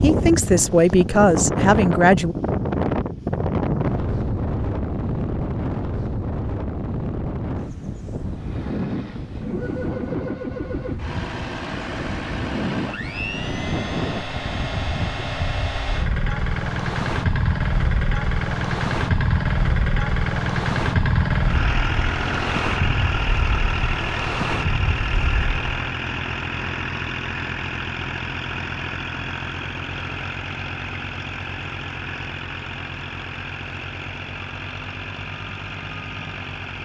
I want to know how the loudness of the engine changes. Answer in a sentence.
The volume of the engine goes up, then down.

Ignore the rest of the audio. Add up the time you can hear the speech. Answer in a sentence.
You can hear the speech for 2 seconds altogether.